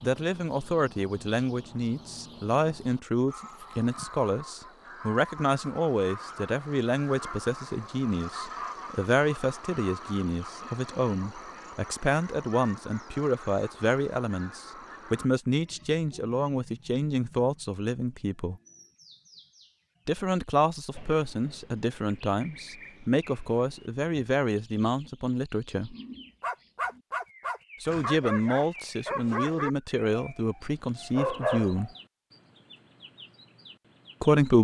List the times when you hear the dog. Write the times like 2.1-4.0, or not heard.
26.4-31.9.